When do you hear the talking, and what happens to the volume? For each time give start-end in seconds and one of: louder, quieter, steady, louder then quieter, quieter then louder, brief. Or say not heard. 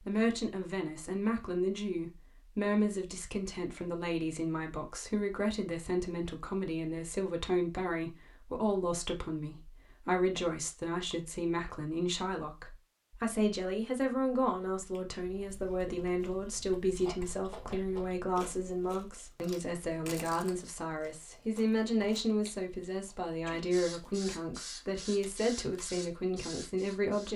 0.0-27.3 steady.